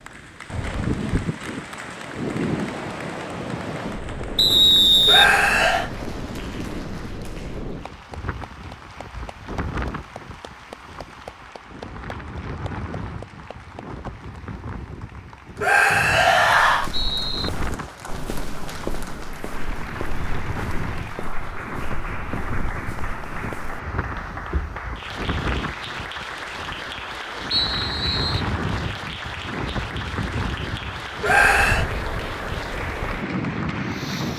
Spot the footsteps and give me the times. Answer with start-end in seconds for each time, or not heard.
16.6-24.9.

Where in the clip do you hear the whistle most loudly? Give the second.
5 s.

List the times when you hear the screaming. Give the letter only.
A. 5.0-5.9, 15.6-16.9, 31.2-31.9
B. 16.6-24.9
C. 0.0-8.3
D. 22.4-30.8
A.